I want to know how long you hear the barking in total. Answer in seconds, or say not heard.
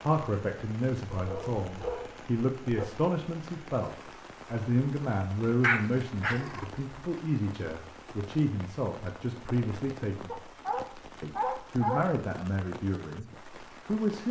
5 s.